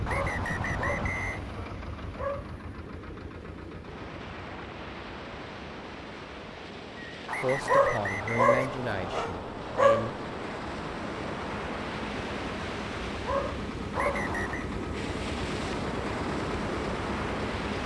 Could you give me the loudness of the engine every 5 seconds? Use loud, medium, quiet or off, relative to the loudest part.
medium, quiet, loud, loud.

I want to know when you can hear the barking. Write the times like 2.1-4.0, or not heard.
0.1-2.5, 7.7-10.1, 13.2-14.3.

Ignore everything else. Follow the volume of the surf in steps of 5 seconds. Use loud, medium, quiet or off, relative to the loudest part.
medium, medium, loud, loud.